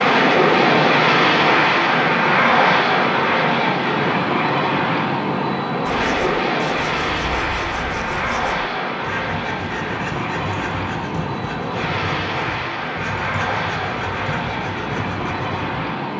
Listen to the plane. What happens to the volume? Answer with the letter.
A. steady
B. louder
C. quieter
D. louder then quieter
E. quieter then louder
C.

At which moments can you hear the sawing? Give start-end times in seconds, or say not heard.
5.8-15.8.